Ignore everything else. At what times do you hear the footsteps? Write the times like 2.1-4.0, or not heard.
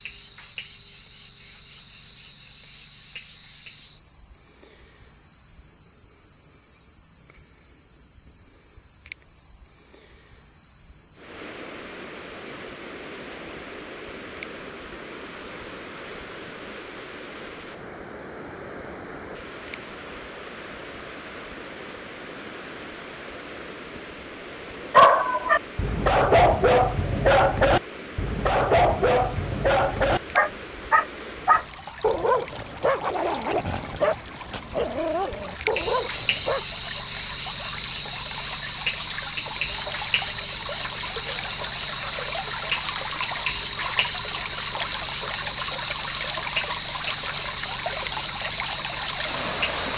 not heard.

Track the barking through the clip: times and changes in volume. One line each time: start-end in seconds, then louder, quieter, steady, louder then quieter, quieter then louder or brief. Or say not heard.
24.9-36.6 quieter.